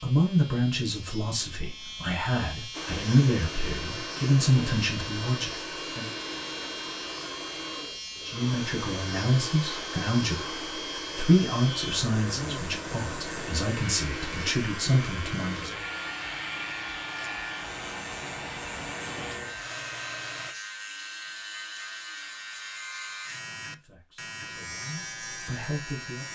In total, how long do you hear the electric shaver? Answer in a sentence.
The electric shaver can be heard for 26 seconds in total.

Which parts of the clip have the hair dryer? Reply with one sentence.
You can hear the hair dryer from 2.7 to 20.6 s.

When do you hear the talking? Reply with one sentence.
You can hear the talking from 0.0 to 6.1 s, from 8.2 to 15.8 s and from 23.5 to 26.2 s.